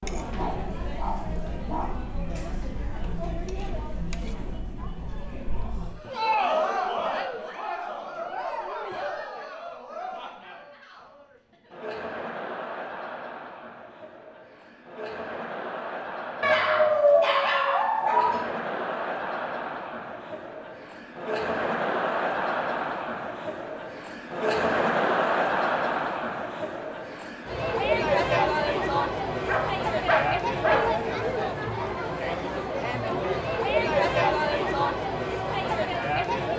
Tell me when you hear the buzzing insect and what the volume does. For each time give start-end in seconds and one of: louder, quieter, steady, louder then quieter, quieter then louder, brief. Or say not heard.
not heard.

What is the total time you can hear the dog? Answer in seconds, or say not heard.
5 s.